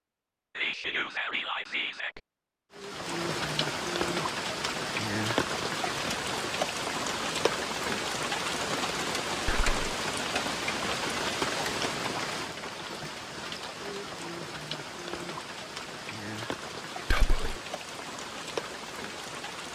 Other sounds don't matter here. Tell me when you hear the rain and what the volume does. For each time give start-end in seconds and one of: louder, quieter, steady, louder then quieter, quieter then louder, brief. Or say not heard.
2.7-19.7 quieter.